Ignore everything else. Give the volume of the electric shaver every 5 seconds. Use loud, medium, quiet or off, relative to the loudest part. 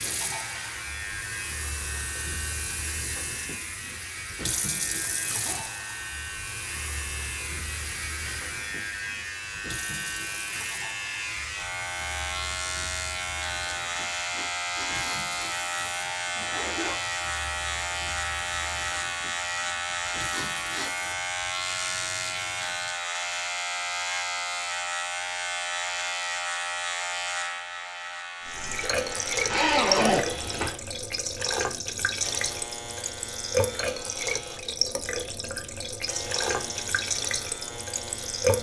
medium, medium, loud, loud, loud, loud, medium, medium.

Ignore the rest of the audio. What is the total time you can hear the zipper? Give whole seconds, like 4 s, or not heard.
3 s.